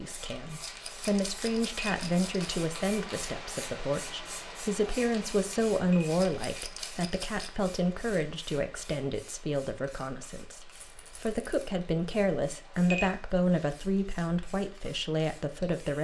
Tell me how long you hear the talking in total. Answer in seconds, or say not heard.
16 s.